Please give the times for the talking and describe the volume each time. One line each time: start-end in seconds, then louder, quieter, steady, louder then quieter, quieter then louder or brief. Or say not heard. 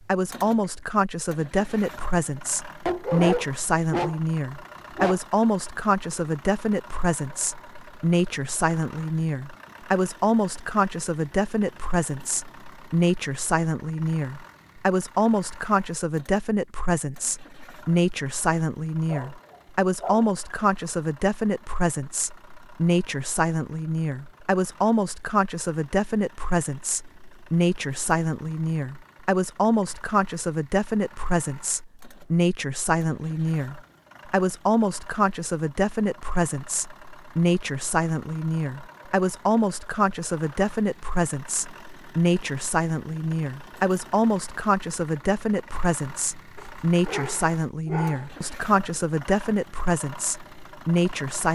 0.1-51.5 steady.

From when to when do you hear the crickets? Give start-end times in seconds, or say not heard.
not heard.